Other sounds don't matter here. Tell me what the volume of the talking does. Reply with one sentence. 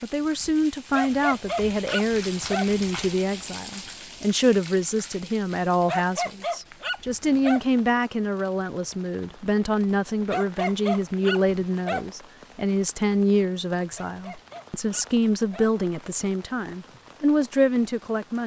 The loudness of the talking stays about the same.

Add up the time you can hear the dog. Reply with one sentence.
You can hear the dog for 7 seconds altogether.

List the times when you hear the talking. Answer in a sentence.
The talking can be heard from 0.0 to 18.4 s.